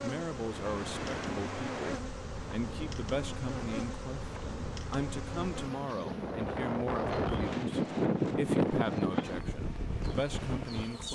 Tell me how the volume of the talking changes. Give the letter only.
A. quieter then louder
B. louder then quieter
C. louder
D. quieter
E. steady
E.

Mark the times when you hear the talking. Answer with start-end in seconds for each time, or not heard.
0.0-11.0.